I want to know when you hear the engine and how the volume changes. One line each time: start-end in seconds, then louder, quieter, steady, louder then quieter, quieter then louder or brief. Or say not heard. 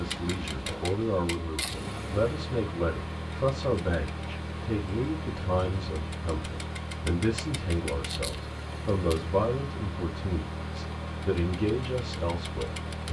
0.0-13.0 steady.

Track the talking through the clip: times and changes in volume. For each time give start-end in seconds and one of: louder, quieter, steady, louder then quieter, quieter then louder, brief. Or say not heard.
0.0-13.0 steady.